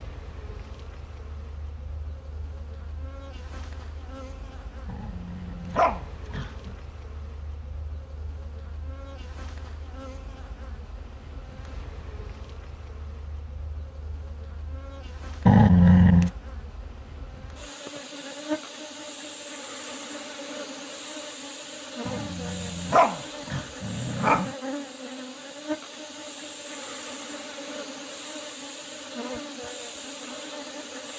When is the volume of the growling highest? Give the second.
16 s.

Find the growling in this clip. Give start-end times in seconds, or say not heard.
4.8-6.8, 15.4-16.3, 22.1-24.6.